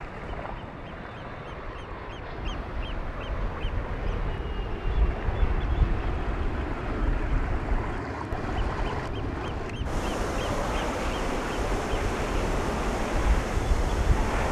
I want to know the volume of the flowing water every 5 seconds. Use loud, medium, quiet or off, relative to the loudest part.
medium, loud, loud.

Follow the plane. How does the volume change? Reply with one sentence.
The volume of the plane goes up.